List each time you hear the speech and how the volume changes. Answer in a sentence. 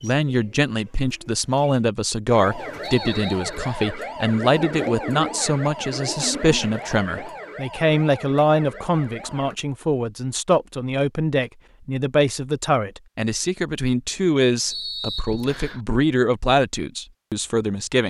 The speech can be heard from 0.0 to 18.0 s, at a steady volume.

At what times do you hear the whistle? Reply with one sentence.
The whistle can be heard from 2.8 to 4.0 s and from 14.7 to 15.8 s.